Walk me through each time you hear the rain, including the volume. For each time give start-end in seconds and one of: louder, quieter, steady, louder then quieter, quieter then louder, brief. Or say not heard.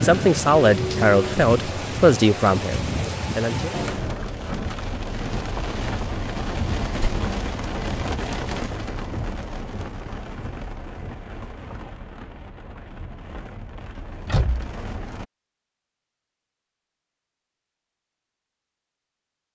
0.0-15.2 quieter.